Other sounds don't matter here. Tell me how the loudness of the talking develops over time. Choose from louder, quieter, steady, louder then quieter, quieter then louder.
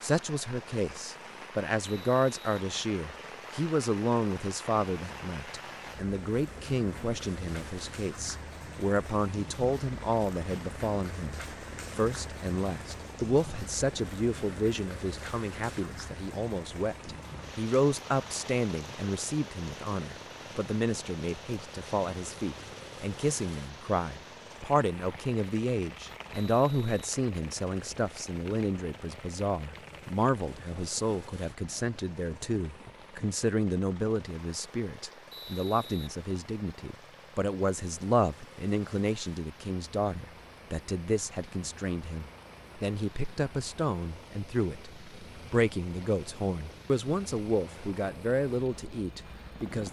steady.